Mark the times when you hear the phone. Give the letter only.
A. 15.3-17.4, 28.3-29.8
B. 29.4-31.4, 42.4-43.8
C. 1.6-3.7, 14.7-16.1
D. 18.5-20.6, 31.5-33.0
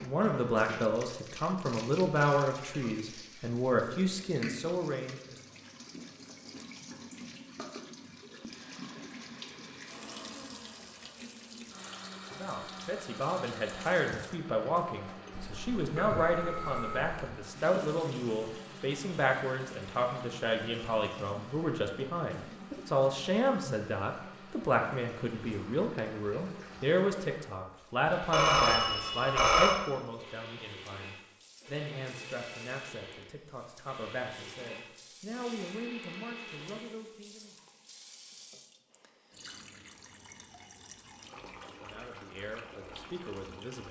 A.